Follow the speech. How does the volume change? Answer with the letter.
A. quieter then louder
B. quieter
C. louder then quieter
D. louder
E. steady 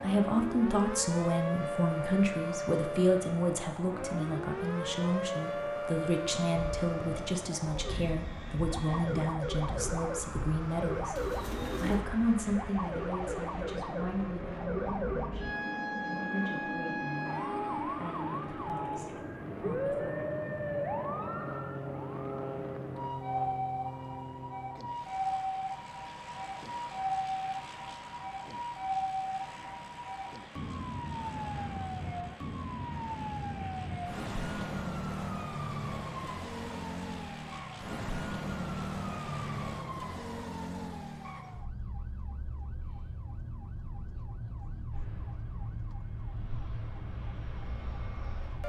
B.